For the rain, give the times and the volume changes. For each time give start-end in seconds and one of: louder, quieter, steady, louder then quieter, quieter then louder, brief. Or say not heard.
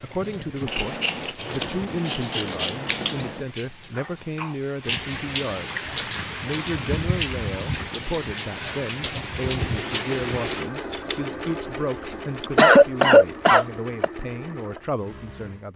0.0-10.7 louder.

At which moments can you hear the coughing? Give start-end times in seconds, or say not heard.
4.0-4.5, 12.6-14.1.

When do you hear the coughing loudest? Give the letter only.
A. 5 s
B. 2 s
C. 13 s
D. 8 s
C.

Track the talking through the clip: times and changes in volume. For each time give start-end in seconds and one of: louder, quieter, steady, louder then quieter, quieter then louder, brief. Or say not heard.
0.0-15.7 steady.